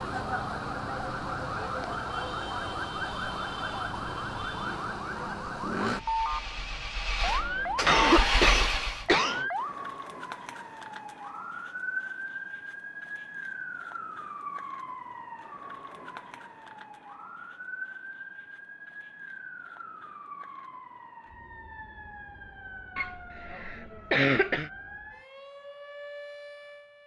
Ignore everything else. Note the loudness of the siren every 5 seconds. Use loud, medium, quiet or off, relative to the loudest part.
loud, loud, medium, medium, quiet, quiet.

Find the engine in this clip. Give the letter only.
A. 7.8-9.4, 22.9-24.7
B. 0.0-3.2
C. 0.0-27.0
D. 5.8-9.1
D.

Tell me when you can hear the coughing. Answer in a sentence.
You can hear the coughing from 7.8 to 9.4 s and from 22.9 to 24.7 s.